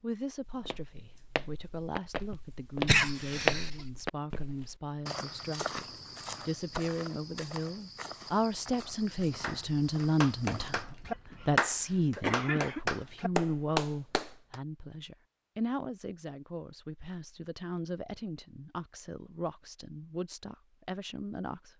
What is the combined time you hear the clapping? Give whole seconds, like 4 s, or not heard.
5 s.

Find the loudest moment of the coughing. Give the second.
3 s.